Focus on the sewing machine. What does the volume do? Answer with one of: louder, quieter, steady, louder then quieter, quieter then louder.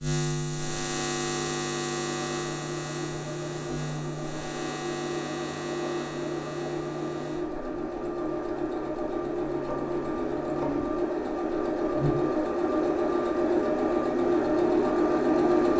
louder.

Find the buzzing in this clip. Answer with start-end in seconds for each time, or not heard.
0.0-15.6.